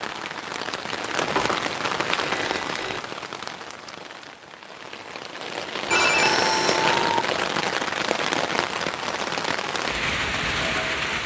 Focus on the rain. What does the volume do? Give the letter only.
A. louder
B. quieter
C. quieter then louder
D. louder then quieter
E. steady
C.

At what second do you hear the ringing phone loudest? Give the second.
6 s.